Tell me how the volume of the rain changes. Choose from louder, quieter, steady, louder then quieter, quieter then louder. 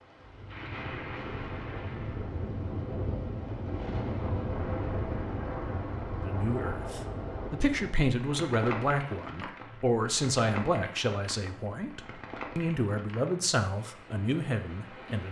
quieter.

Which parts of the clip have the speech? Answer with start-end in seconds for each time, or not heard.
6.2-15.2.